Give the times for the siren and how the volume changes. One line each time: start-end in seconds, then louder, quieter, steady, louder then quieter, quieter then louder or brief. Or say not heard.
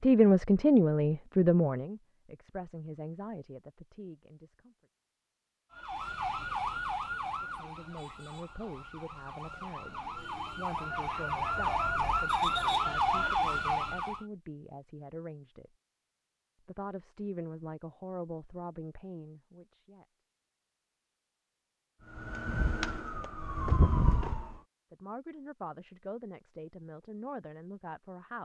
5.7-14.2 quieter then louder
22.1-24.6 brief.